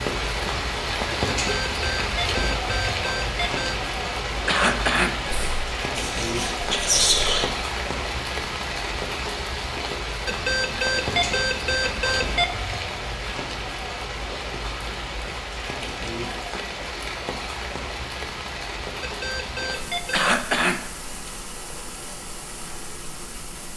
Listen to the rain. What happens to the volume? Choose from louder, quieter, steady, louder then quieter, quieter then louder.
quieter.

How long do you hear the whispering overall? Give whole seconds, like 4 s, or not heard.
2 s.